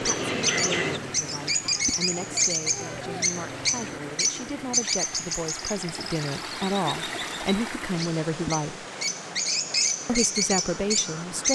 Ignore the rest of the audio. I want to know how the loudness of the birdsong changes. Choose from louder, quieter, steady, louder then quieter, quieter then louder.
quieter then louder.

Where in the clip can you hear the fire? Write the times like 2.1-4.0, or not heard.
not heard.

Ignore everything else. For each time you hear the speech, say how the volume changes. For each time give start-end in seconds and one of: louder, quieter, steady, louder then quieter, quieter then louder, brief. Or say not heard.
0.0-8.8 louder
10.1-11.4 brief.